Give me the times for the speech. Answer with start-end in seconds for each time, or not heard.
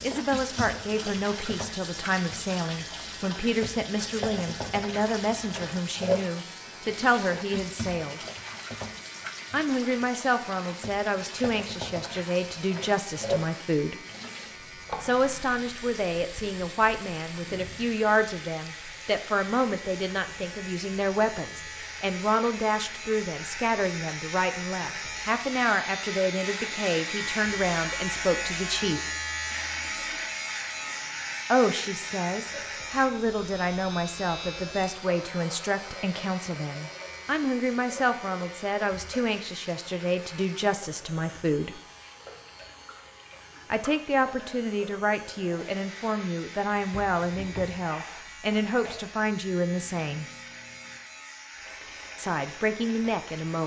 0.0-8.2, 9.5-13.9, 15.0-29.1, 31.5-41.8, 43.7-50.2, 52.1-53.6.